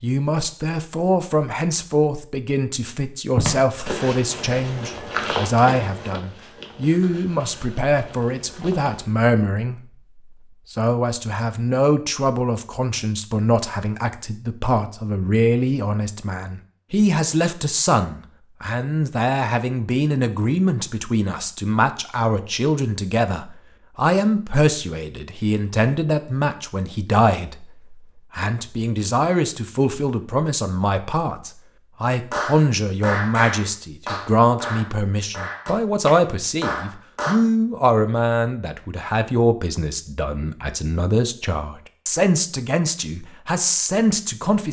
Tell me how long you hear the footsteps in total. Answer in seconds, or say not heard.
6 s.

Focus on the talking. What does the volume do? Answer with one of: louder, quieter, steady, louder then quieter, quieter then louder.
steady.